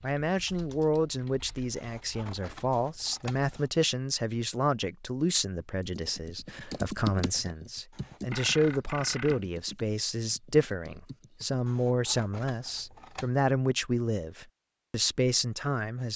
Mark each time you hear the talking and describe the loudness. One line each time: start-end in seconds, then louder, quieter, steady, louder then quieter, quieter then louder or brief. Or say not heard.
0.0-16.1 steady.